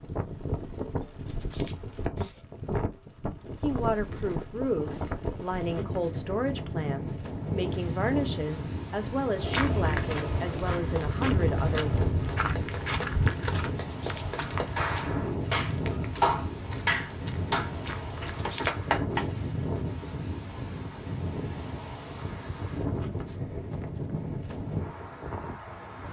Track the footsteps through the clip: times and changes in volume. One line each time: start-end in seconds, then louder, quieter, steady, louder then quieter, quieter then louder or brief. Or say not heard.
9.2-18.4 quieter.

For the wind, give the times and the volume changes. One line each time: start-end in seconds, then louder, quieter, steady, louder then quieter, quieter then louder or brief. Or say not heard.
0.0-26.0 steady.